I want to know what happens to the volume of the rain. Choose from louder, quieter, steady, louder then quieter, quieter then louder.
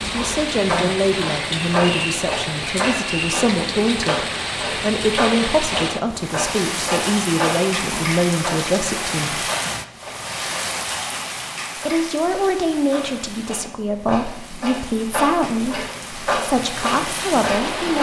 quieter.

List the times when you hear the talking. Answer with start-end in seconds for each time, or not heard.
0.1-9.4, 11.8-17.9.